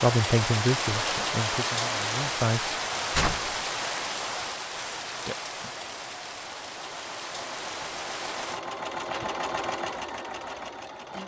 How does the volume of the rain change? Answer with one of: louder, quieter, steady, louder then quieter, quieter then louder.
quieter.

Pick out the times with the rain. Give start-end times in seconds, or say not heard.
0.0-8.6.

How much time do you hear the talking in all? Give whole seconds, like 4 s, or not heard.
3 s.